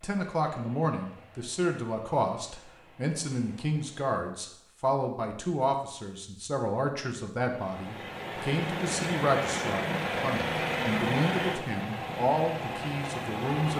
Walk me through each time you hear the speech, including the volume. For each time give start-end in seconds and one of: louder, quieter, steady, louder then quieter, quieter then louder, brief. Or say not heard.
0.0-13.7 steady.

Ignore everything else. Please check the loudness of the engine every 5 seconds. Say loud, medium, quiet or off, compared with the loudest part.
quiet, loud, loud.